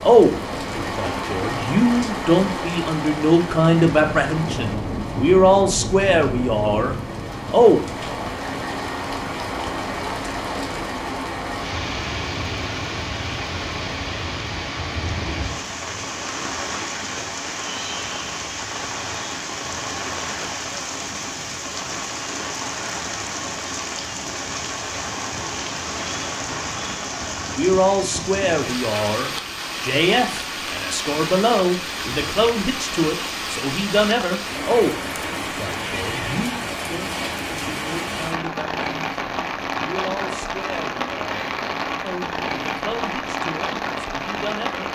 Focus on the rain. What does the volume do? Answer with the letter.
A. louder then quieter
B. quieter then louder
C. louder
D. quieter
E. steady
E.